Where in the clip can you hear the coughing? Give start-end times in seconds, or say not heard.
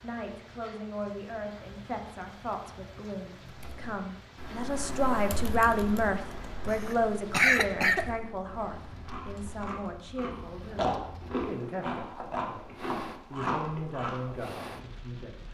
6.7-8.1.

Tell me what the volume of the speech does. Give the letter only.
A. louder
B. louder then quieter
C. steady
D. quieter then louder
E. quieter
B.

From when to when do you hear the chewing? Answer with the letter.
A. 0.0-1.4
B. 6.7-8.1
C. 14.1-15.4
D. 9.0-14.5
D.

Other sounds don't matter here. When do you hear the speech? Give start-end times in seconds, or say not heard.
0.0-15.4.